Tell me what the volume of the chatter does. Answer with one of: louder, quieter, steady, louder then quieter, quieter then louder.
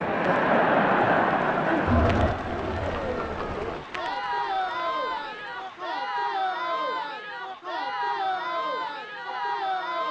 quieter.